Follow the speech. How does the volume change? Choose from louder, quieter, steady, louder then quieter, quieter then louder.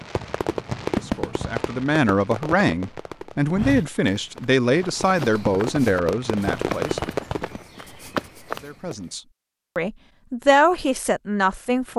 quieter then louder.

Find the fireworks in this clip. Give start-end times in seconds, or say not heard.
0.0-7.7.